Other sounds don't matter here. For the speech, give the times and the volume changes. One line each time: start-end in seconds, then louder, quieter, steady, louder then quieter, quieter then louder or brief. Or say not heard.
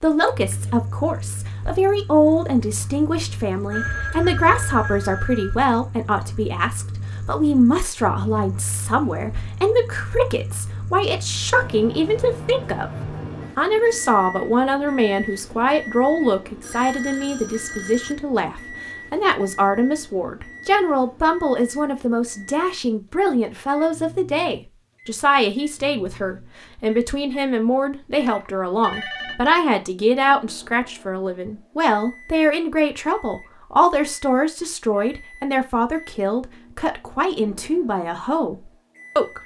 0.0-39.4 steady.